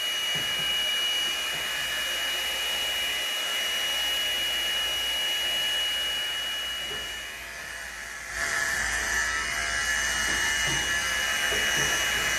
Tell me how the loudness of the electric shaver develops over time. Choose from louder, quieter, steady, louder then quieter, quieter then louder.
louder.